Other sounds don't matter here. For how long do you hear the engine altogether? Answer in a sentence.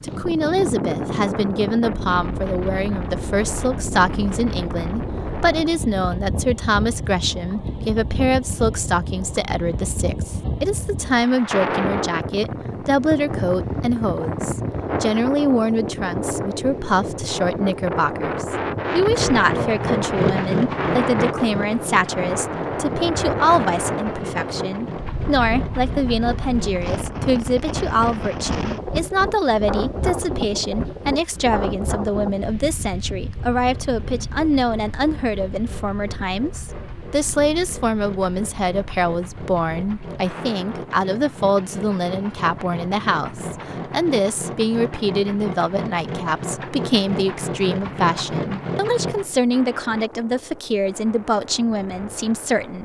The engine can be heard for 24 seconds in total.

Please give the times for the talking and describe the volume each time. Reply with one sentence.
You can hear the talking from 0.0 to 52.8 s, at a steady volume.